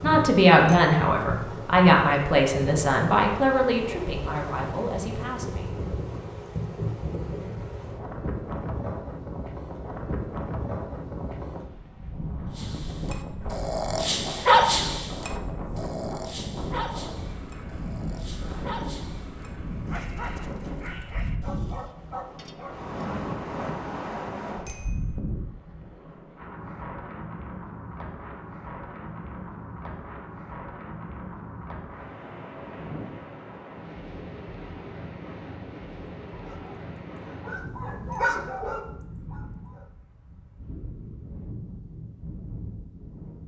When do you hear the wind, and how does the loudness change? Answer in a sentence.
The wind can be heard from 0.0 to 43.4 s, getting quieter.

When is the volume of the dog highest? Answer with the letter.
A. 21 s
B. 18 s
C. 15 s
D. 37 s
C.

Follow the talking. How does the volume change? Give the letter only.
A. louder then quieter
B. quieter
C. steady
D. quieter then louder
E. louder
B.